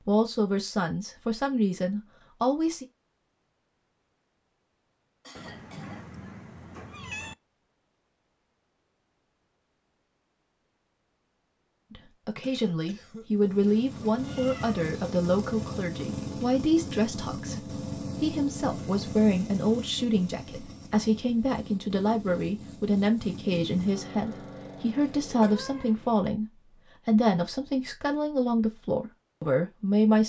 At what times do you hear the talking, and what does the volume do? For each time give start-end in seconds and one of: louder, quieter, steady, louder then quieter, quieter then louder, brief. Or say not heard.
0.1-2.9 brief
11.9-30.2 steady.